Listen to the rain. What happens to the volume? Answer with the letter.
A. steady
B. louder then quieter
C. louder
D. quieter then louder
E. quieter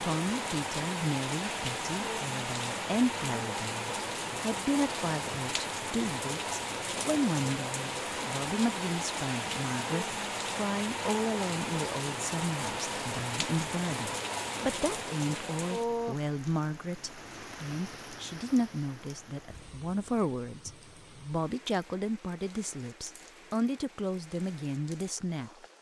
E.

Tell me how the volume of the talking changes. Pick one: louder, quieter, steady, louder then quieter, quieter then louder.
steady.